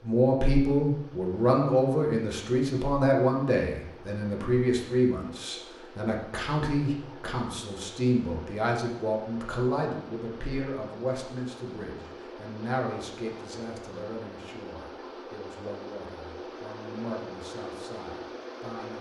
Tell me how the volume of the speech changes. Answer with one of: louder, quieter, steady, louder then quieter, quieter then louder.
quieter.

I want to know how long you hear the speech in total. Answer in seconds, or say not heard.
19 s.